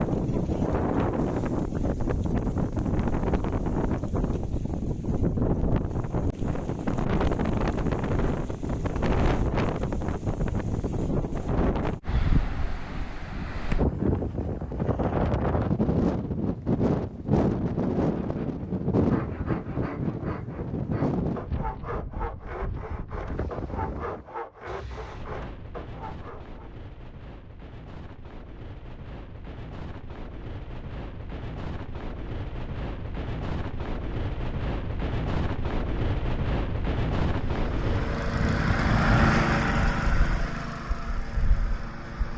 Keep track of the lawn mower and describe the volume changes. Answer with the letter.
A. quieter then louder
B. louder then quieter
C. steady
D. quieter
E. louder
B.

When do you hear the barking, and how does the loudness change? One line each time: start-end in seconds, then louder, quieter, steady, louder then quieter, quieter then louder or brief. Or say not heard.
not heard.